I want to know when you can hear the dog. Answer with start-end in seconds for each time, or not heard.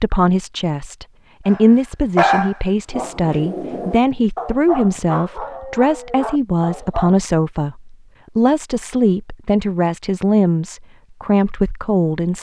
1.4-7.2.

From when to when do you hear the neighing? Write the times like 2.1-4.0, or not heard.
not heard.